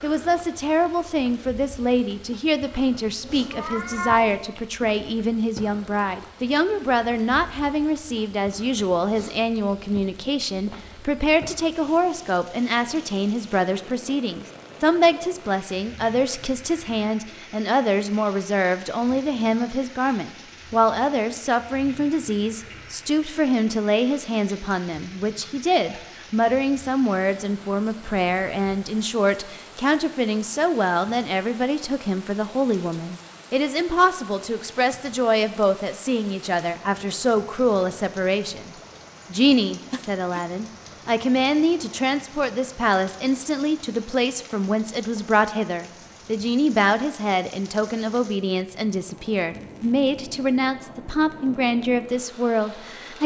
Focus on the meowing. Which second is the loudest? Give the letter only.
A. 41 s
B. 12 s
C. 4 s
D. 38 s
C.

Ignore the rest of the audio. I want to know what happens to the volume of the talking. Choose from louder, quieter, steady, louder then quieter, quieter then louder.
steady.